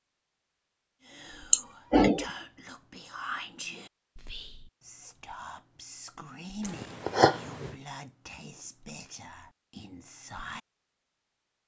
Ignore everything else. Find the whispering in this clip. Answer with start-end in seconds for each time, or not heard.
1.0-10.6.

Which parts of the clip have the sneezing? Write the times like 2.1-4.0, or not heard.
1.5-2.3, 6.6-7.8.